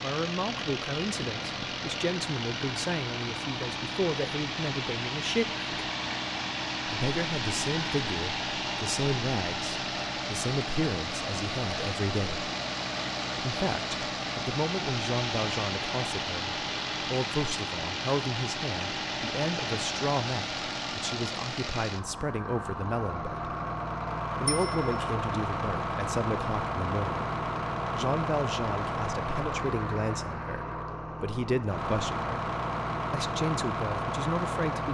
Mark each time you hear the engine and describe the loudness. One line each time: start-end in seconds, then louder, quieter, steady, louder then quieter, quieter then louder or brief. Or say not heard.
0.0-34.9 steady.